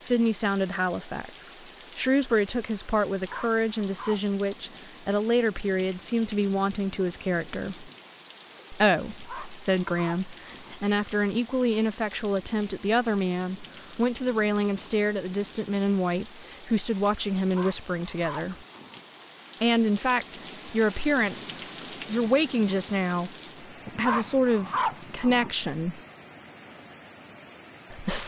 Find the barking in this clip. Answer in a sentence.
You can hear the barking from 3.1 to 4.3 s, from 9.1 to 10.8 s, from 17.4 to 19.0 s and from 23.9 to 25.5 s.